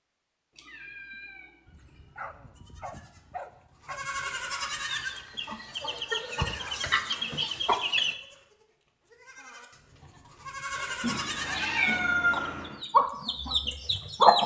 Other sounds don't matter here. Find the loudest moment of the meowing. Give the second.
12 s.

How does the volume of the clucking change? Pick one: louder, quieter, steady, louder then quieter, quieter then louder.
louder.